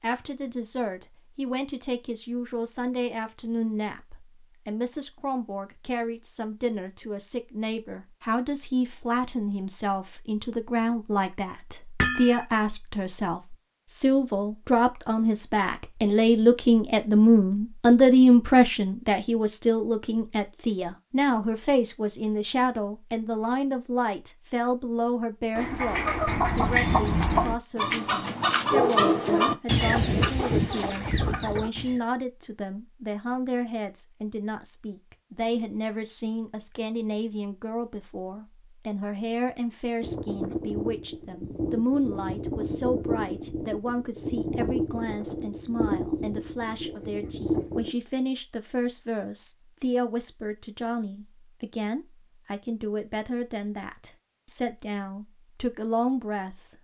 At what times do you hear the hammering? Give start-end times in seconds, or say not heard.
12.0-12.4.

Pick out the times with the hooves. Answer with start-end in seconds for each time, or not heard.
40.0-47.9.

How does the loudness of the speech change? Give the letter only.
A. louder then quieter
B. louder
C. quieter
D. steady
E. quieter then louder
A.